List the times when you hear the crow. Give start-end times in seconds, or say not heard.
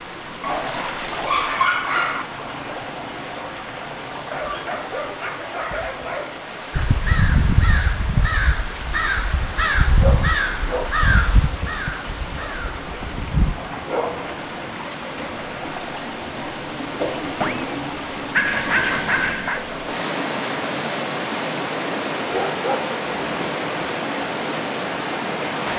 6.7-13.6.